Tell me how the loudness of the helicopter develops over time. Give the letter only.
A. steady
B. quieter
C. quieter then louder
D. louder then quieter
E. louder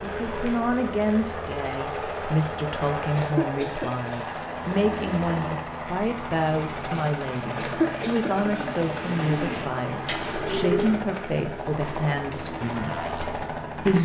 A.